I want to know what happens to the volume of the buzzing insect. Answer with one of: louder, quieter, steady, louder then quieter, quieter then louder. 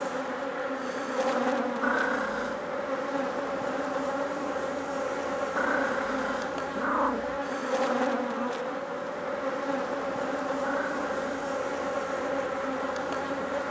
steady.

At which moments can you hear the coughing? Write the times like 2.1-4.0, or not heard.
not heard.